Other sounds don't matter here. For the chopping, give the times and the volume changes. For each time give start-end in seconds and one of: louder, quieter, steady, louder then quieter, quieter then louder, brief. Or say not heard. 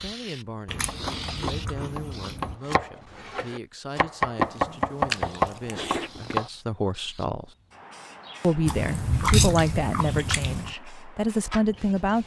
0.8-6.5 louder.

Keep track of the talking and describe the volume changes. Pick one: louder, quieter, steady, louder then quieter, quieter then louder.
louder.